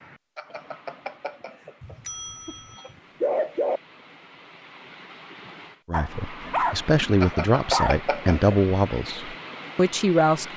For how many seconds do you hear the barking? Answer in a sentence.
The barking can be heard for 4 seconds in total.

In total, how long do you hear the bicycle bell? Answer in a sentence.
You can hear the bicycle bell for 4 seconds altogether.